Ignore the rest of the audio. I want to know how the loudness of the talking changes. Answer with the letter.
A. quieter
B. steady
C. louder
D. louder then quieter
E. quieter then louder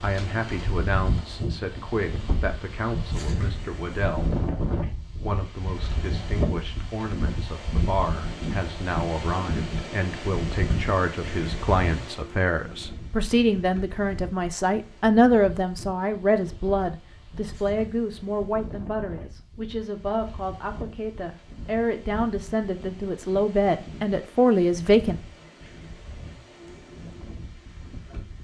C.